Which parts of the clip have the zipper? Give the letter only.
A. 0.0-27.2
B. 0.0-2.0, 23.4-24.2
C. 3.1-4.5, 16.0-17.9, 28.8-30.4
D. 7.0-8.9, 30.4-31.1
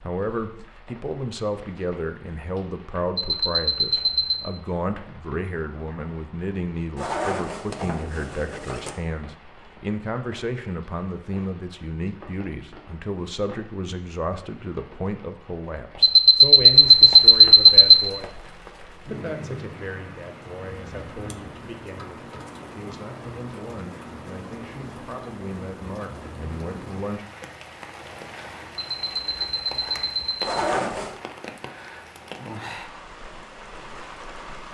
D.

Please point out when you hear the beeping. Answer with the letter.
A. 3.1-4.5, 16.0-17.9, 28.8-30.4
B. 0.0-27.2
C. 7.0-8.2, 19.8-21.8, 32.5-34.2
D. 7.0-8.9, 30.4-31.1
A.